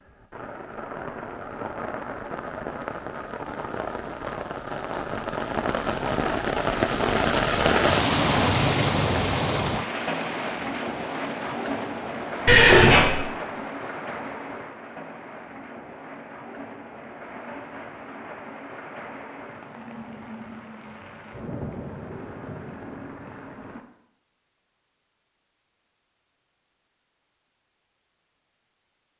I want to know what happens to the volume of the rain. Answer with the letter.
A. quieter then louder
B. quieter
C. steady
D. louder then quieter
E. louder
D.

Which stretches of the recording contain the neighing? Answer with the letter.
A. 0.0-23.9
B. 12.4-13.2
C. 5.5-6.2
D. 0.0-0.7
B.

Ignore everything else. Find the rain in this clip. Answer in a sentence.
The rain can be heard from 0.0 to 23.9 s.